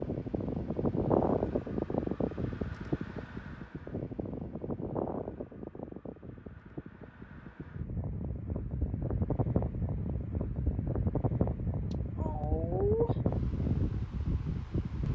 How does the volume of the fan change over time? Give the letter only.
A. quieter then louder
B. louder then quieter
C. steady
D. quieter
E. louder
A.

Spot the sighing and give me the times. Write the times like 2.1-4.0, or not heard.
12.2-13.2.